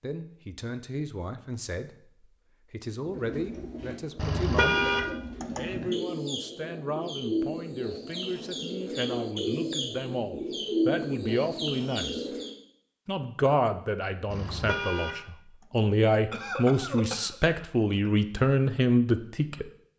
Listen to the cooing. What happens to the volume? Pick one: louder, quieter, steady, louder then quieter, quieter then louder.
louder.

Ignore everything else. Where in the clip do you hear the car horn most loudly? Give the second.
5 s.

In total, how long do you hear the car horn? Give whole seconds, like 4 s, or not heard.
2 s.